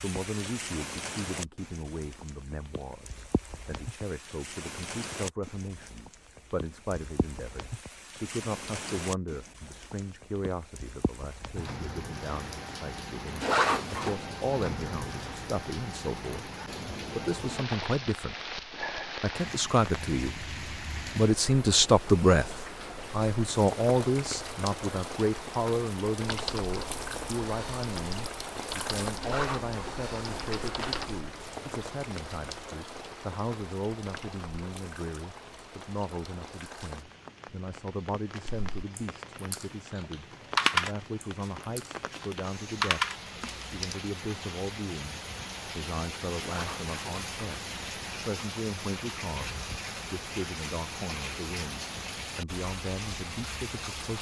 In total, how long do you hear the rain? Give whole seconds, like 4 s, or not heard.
54 s.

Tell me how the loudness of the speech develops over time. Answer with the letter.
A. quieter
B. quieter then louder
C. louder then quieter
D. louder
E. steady
C.